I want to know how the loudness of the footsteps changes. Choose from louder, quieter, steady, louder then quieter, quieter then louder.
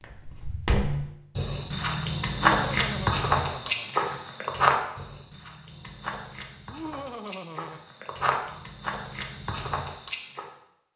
quieter then louder.